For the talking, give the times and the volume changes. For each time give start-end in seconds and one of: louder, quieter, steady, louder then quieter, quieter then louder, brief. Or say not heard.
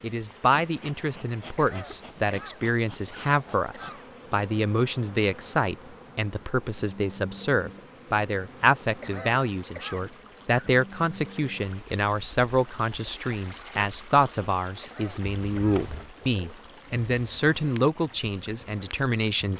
0.0-19.5 steady.